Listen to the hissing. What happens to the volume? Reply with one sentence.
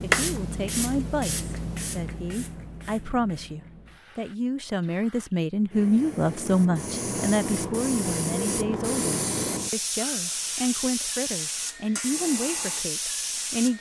The volume of the hissing goes down, then up.